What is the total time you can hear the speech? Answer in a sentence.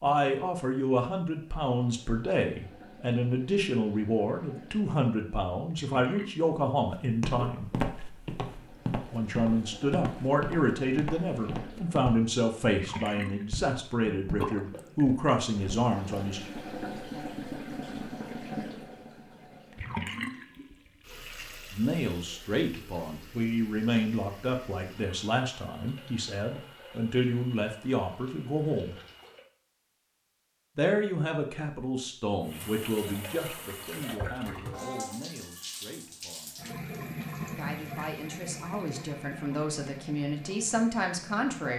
The speech can be heard for 32 seconds in total.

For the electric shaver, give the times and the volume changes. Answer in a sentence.
The electric shaver can't be heard in this clip.